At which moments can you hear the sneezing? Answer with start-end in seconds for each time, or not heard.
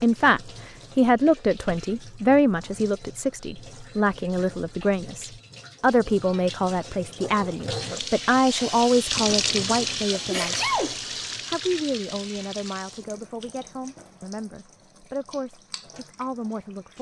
10.1-10.9.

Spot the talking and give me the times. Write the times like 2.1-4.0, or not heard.
0.0-10.7, 11.4-16.9.